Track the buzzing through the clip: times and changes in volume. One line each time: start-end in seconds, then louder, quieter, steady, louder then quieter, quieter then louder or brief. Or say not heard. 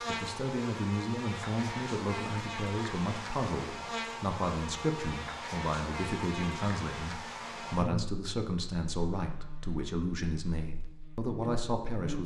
0.0-12.2 quieter.